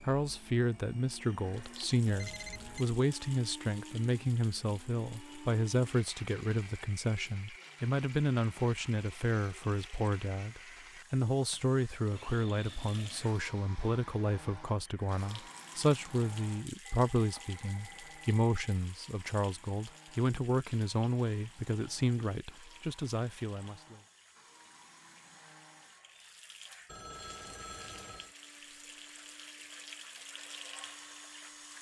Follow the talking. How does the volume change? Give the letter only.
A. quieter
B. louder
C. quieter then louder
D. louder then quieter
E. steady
E.